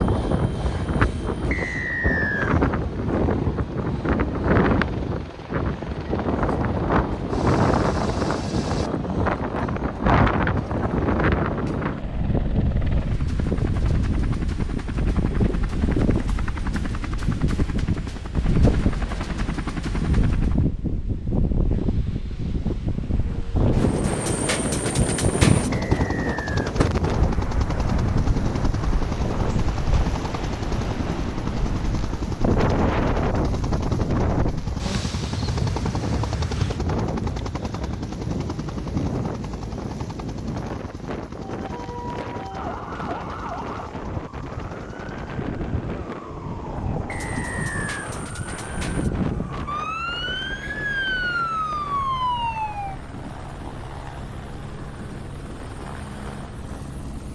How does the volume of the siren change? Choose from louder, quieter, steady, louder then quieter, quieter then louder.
louder.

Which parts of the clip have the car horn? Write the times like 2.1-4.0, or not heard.
not heard.